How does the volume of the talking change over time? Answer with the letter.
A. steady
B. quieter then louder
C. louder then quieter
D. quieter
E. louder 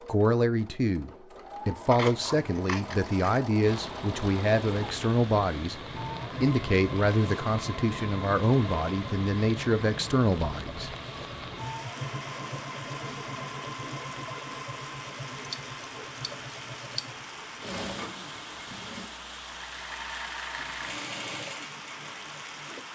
A.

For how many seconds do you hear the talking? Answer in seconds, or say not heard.
10 s.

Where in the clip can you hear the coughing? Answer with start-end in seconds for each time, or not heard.
not heard.